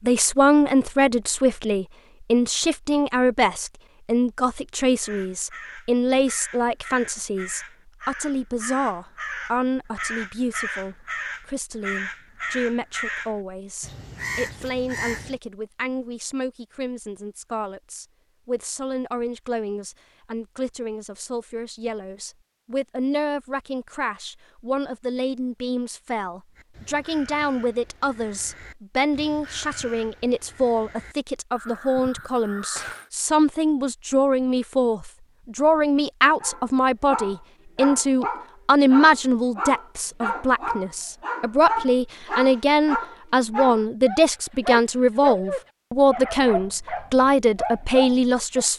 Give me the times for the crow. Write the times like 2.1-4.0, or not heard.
5.0-15.4, 26.6-33.1.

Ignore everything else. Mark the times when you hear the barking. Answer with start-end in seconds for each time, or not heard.
36.4-48.6.